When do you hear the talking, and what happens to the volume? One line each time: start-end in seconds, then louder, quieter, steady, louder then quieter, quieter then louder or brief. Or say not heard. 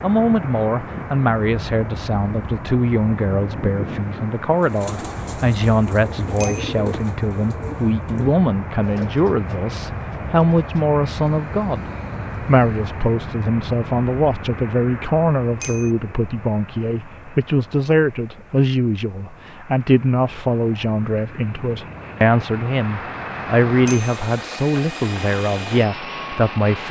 0.0-26.8 steady.